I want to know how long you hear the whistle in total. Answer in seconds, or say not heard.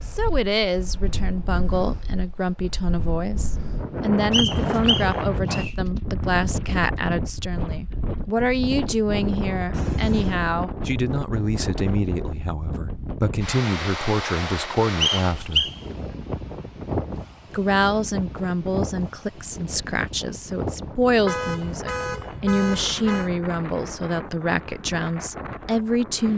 2 s.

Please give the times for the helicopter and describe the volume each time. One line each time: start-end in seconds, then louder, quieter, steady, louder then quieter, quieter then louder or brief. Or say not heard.
not heard.